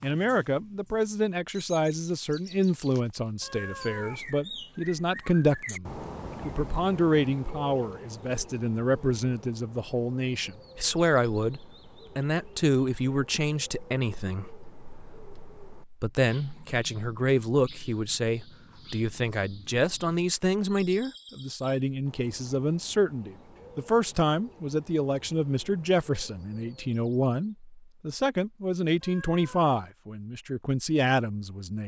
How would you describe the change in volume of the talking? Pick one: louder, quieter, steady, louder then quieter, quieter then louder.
steady.